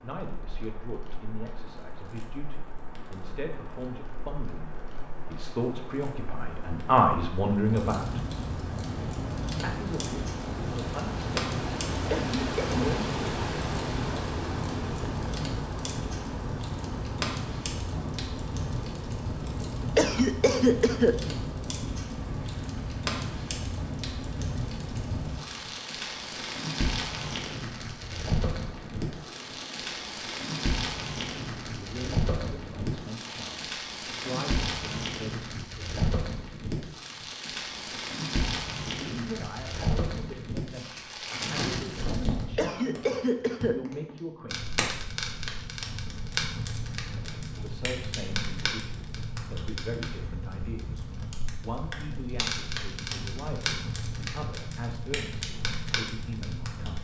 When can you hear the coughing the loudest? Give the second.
20 s.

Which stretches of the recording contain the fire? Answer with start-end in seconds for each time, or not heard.
0.1-56.9.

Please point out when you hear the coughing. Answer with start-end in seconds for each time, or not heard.
12.1-12.9, 19.9-21.1, 42.5-43.8.